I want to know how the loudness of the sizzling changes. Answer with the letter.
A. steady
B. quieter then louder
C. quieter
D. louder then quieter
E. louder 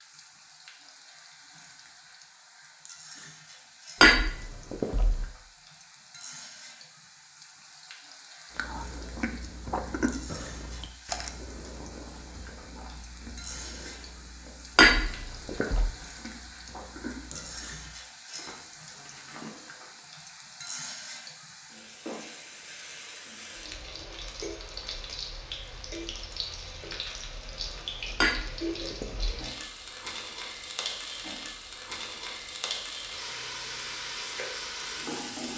E.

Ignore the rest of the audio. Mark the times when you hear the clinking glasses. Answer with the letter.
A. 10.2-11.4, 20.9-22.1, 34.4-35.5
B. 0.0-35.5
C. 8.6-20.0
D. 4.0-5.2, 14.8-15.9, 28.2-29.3
D.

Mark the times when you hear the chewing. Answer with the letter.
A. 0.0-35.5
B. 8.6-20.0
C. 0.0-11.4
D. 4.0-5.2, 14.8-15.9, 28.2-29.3
B.